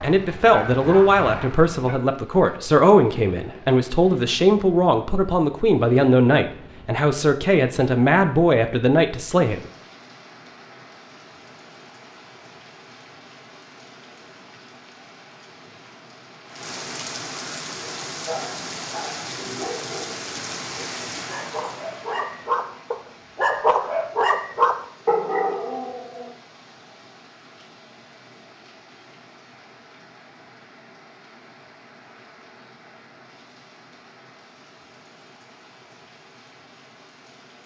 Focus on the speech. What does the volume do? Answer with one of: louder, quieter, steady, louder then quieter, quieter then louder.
steady.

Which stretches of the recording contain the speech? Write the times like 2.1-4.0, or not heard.
0.0-9.7.